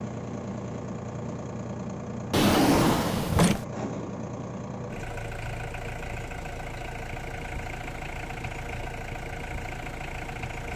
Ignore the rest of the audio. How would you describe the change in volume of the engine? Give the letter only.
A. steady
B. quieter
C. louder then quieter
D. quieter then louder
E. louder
A.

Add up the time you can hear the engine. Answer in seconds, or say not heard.
11 s.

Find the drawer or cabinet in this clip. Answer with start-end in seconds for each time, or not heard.
2.3-3.6.